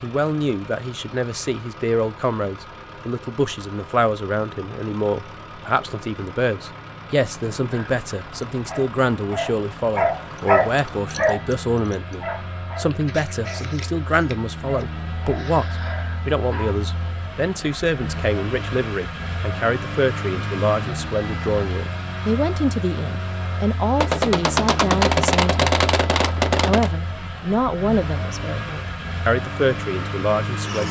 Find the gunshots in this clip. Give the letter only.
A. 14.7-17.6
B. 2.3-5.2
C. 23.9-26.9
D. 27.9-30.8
C.